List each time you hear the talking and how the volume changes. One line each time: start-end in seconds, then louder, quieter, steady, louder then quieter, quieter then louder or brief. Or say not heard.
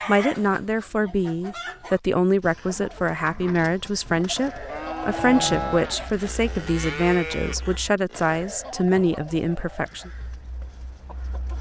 0.1-10.1 steady.